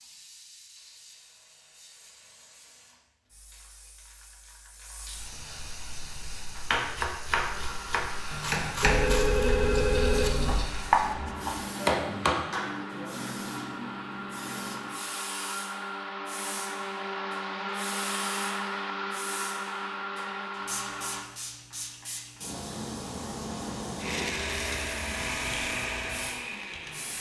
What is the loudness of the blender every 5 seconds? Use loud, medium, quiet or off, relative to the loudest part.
off, medium, medium, loud, loud, loud.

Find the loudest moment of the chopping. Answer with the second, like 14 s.
11 s.